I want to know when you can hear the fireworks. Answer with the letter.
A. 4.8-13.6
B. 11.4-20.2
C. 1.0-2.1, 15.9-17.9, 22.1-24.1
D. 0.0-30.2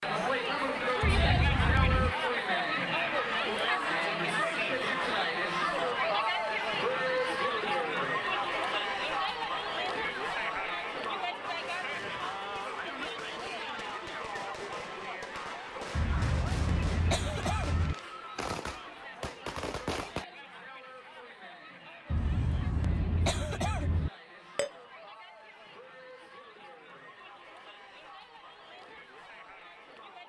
B.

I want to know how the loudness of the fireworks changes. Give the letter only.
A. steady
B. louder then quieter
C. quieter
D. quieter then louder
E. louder
E.